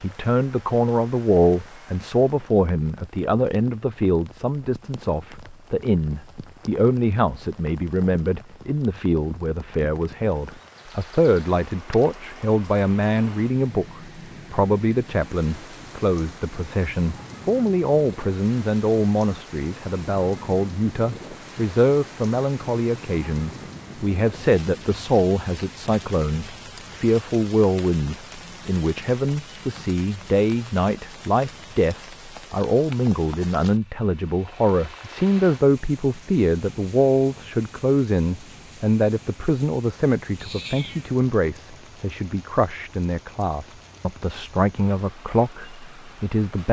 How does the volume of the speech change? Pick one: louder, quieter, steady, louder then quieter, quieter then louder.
steady.